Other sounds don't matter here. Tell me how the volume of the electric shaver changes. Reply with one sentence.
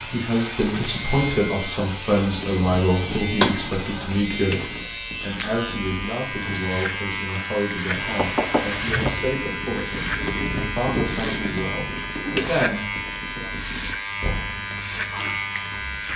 The loudness of the electric shaver stays about the same.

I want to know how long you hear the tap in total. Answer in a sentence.
You can hear the tap for 16 seconds altogether.